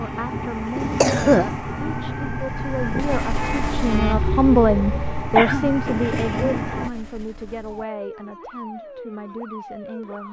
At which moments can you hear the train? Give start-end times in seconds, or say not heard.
0.0-6.9.